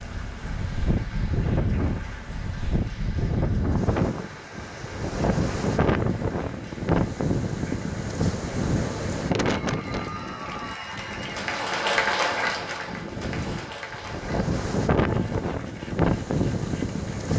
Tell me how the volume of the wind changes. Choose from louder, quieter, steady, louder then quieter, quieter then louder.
quieter then louder.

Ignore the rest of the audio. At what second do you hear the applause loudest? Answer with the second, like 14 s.
12 s.